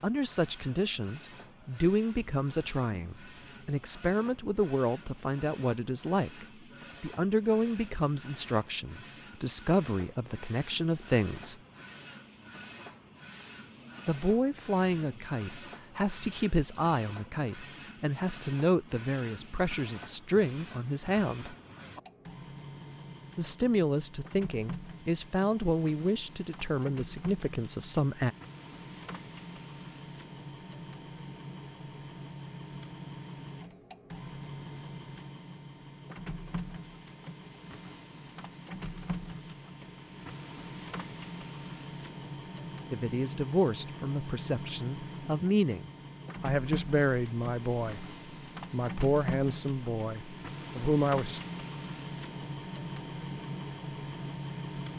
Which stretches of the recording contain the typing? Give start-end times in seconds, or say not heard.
not heard.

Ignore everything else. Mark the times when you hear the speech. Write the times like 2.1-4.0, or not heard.
0.0-11.6, 14.1-21.6, 23.4-28.4, 42.9-48.0, 48.7-51.4.